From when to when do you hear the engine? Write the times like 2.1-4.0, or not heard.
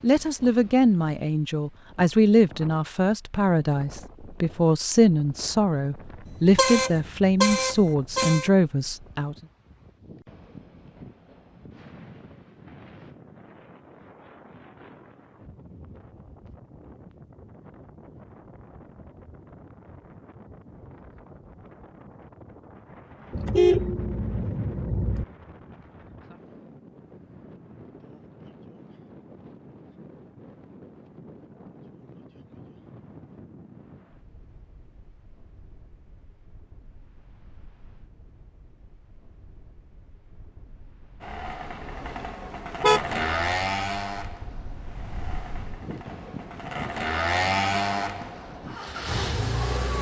41.2-49.9.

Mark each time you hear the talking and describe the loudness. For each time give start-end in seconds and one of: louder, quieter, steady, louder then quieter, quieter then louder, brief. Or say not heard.
0.0-9.3 steady.